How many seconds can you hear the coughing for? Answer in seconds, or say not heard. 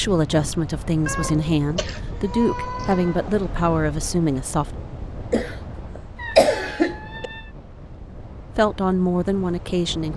3 s.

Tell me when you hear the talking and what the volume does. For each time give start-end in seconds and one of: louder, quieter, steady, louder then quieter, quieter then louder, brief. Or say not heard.
0.0-4.8 steady
8.1-10.1 brief.